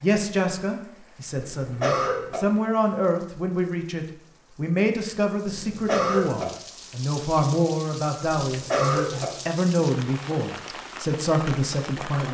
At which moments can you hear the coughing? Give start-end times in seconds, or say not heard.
1.6-2.4, 5.5-6.5, 8.4-9.2.